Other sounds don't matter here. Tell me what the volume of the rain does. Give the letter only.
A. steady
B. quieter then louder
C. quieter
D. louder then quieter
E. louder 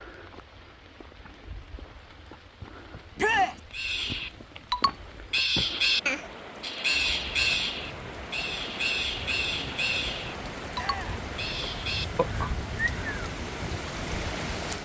E.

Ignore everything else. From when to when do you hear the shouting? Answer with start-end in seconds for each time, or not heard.
3.1-3.6, 10.8-11.2.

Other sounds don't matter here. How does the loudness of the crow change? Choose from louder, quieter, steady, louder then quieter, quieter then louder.
quieter.